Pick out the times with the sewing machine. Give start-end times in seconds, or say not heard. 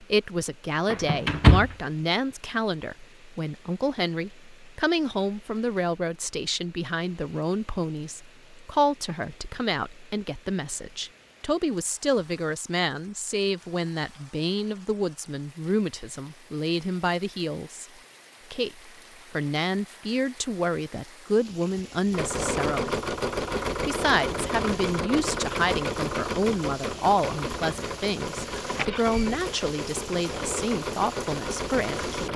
22.1-32.3.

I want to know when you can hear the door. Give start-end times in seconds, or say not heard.
0.9-1.8, 28.6-29.4.